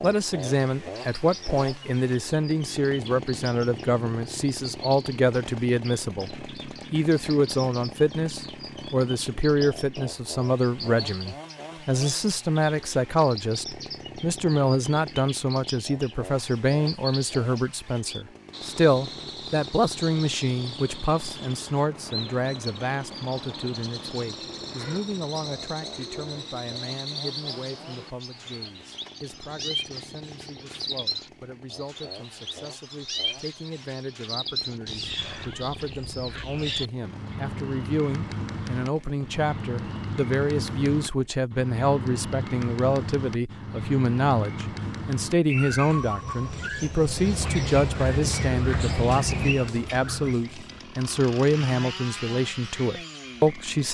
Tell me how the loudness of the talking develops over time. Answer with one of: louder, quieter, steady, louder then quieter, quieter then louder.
quieter then louder.